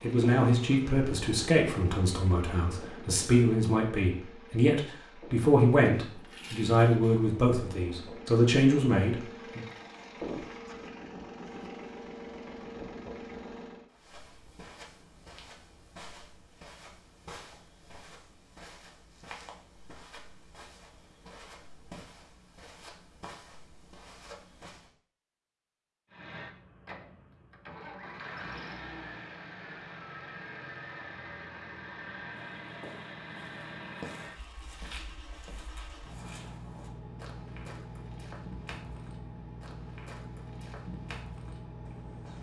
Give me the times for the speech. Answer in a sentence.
You can hear the speech from 0.0 to 9.6 s.